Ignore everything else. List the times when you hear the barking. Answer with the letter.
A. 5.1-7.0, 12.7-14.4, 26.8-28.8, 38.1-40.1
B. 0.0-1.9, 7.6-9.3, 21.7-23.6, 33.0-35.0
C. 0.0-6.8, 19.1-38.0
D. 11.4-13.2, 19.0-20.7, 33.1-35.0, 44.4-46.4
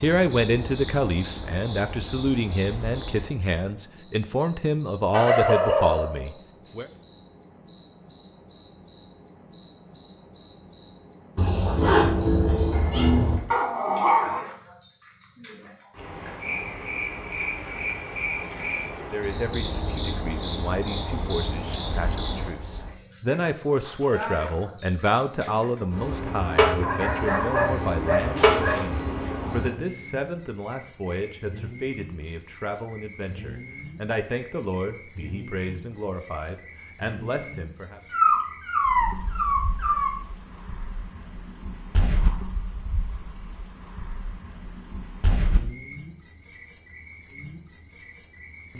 A.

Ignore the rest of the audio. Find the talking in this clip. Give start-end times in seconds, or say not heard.
0.0-6.8, 19.1-38.0.